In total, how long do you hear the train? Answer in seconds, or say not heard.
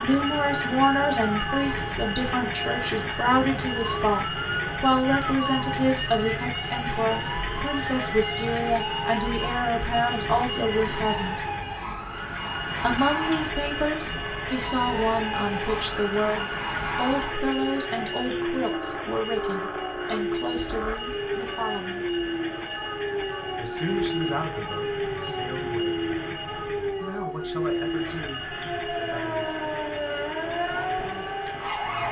32 s.